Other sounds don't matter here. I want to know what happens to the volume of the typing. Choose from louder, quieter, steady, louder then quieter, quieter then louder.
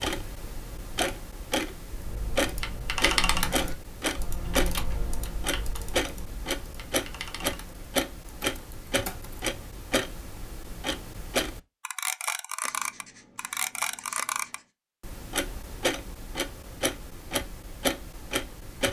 quieter.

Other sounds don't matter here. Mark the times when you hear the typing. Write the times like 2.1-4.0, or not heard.
2.0-9.4.